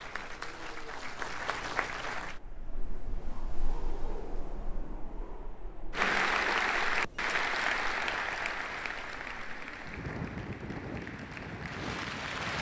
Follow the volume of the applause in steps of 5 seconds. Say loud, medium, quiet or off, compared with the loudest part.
medium, loud, medium.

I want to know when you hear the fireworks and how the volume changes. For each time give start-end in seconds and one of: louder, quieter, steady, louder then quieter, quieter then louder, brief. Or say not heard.
not heard.